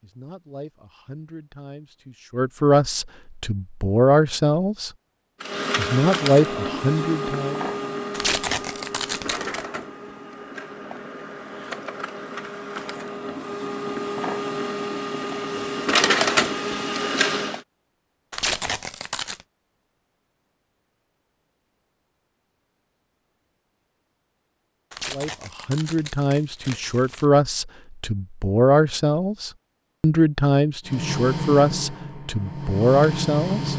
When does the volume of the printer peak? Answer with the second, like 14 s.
16 s.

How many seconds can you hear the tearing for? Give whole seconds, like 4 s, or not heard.
5 s.